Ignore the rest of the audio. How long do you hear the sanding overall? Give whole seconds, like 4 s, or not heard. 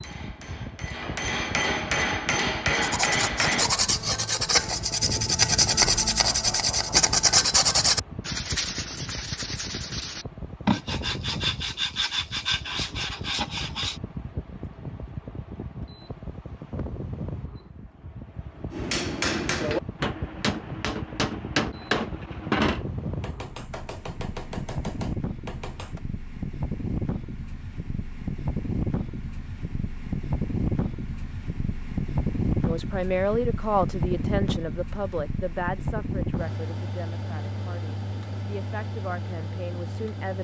11 s.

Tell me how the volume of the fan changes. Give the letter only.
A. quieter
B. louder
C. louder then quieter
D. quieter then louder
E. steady
B.